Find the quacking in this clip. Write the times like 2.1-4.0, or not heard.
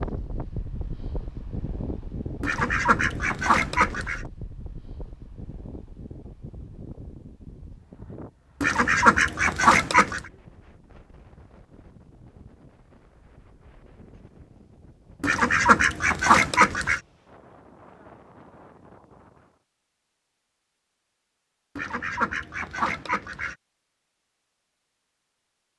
2.4-4.2, 8.6-10.2, 15.2-17.0, 21.8-23.6.